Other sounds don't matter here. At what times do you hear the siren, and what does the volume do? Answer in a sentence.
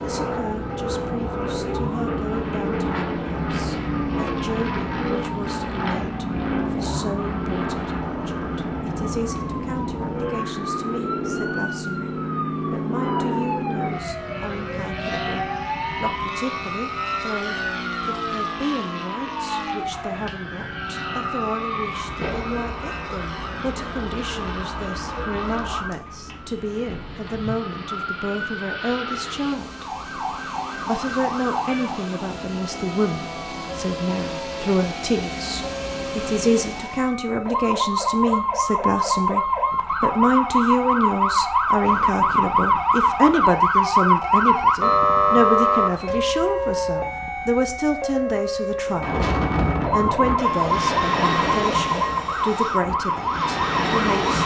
You can hear the siren from 0.0 to 54.4 s, getting louder.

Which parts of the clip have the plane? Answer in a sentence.
You can hear the plane from 0.0 to 37.1 s and from 48.8 to 54.4 s.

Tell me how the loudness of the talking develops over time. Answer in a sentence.
The volume of the talking goes up.